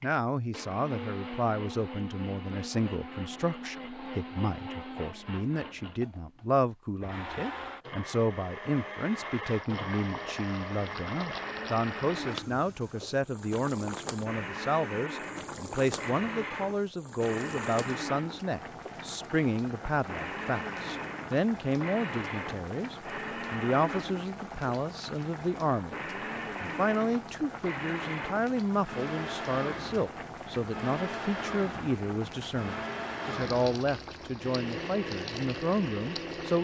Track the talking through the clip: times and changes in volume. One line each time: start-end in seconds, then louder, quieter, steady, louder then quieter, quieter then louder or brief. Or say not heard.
0.0-25.9 steady
26.6-36.5 steady.